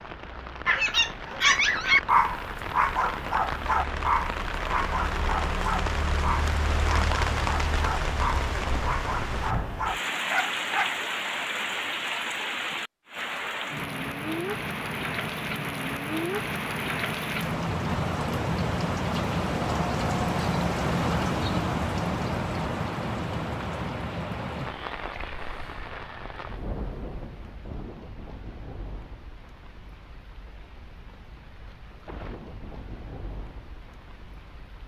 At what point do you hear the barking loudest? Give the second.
2 s.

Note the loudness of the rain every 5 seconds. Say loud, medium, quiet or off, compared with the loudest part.
medium, loud, loud, loud, loud, quiet, quiet.